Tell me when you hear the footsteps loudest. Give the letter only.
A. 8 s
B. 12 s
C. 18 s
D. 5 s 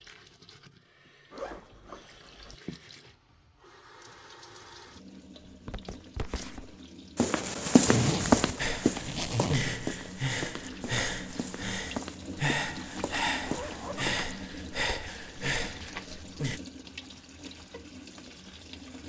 A.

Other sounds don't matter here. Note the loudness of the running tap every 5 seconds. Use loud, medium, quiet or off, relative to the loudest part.
medium, medium, loud, loud.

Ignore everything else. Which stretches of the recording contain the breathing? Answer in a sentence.
The breathing can be heard from 8.6 to 16.6 s.